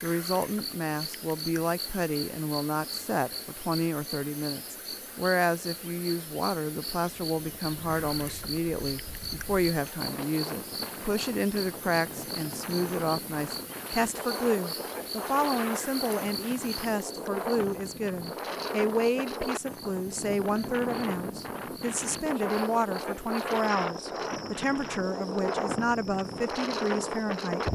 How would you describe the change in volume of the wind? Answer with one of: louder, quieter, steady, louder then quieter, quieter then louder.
louder.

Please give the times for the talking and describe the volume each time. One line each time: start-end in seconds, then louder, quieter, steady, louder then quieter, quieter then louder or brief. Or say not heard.
0.0-27.7 steady.